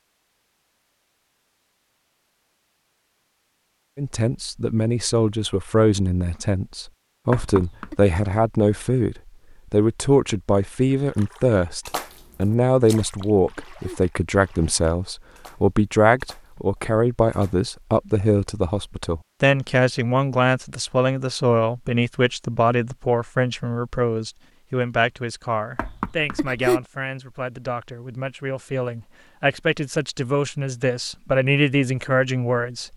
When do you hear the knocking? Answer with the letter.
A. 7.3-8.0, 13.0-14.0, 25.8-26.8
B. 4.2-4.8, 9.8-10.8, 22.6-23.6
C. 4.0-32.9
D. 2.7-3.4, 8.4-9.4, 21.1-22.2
A.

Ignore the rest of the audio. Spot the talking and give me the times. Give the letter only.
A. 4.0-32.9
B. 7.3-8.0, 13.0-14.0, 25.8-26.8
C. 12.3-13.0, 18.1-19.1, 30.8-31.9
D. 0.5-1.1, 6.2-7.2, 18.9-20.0
A.